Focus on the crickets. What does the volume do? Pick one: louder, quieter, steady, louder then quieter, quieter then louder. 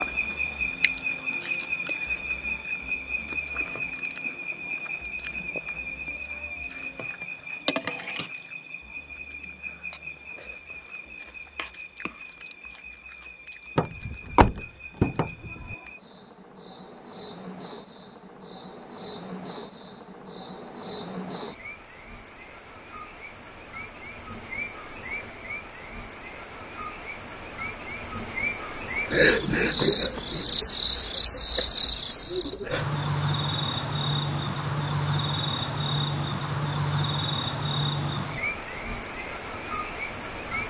quieter then louder.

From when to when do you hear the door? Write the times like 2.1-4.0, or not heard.
13.8-15.8.